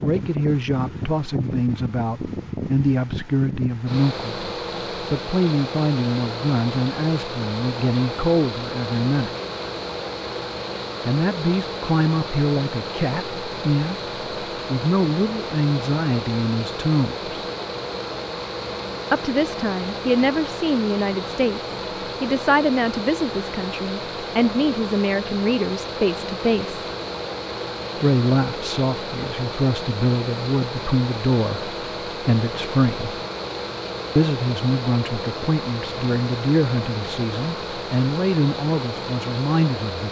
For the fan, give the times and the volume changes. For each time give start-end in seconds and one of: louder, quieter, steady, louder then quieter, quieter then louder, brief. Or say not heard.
0.0-40.0 steady.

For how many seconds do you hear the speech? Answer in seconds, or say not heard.
34 s.